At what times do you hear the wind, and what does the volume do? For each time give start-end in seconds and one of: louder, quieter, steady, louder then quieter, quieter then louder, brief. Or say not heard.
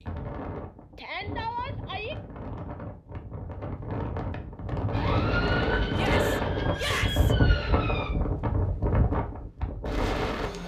0.0-10.6 louder.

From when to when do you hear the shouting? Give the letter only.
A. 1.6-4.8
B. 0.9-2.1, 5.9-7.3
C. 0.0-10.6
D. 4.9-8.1
B.